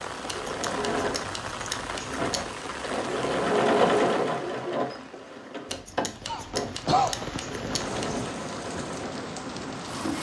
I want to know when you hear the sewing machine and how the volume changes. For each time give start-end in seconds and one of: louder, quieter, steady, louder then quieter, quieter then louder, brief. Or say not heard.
0.1-10.1 louder then quieter.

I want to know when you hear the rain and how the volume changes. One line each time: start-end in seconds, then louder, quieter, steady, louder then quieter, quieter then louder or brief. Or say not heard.
0.0-10.1 quieter then louder.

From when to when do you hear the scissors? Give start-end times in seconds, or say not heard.
0.2-2.6, 5.7-8.2.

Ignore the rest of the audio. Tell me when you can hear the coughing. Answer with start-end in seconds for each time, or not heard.
6.2-7.8.